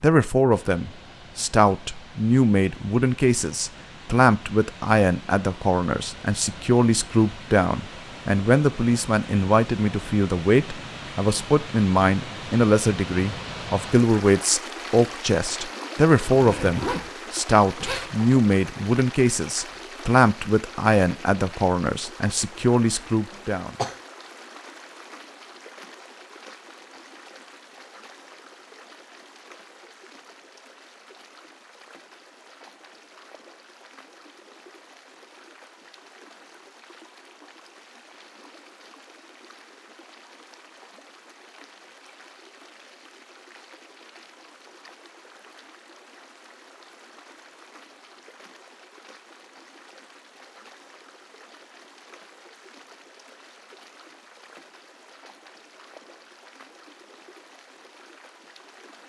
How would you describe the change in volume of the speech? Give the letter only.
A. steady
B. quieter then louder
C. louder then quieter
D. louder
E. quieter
A.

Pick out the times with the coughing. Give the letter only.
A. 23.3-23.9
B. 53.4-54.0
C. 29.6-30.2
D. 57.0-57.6
A.